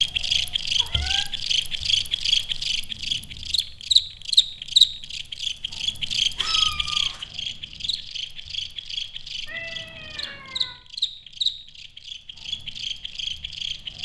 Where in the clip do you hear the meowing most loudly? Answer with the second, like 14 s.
7 s.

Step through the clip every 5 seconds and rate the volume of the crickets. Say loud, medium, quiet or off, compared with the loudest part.
loud, medium, medium.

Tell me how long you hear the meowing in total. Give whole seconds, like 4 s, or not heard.
3 s.